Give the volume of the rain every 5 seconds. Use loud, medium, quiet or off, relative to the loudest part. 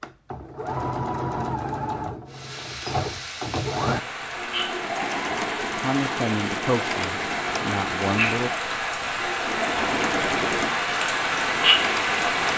medium, medium, loud.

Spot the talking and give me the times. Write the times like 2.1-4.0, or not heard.
5.7-8.5.